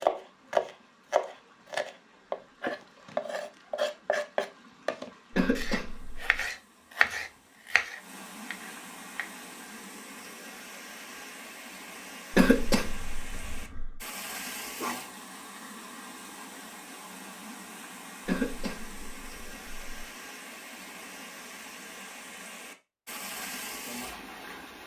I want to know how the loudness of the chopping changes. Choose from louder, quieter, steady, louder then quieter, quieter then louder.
quieter.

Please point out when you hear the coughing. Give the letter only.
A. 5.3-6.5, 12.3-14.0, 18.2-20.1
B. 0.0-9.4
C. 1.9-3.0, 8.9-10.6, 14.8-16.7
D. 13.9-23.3
A.